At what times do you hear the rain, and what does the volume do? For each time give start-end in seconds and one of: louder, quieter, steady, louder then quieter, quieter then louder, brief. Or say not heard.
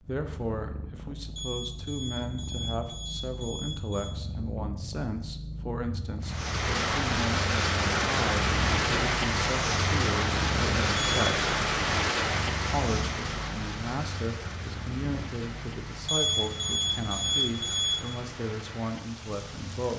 6.2-19.9 quieter.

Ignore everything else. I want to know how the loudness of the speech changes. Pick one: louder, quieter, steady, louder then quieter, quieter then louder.
steady.